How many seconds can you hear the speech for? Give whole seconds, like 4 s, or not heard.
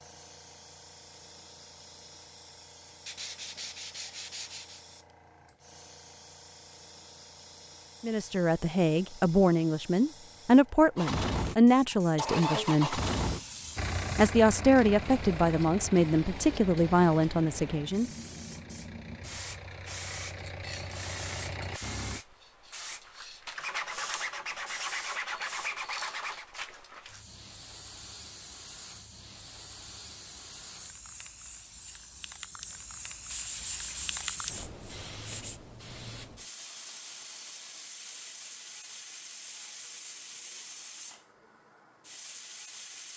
9 s.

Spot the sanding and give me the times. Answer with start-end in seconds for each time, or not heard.
3.0-4.8, 23.6-26.6, 33.3-35.6.